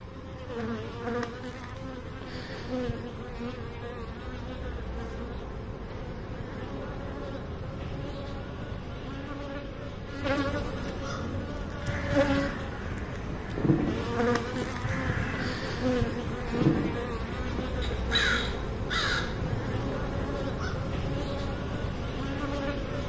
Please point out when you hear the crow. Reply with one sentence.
The crow can be heard from 11.0 to 20.8 s.